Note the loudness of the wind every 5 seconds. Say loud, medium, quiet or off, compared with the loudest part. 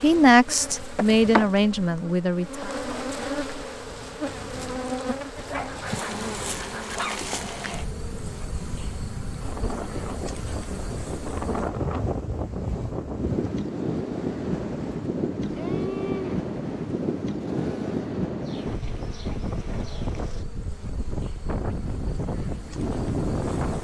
quiet, medium, loud, loud, loud.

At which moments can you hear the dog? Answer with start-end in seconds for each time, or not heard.
5.3-7.2.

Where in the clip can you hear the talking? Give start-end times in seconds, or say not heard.
0.0-2.7.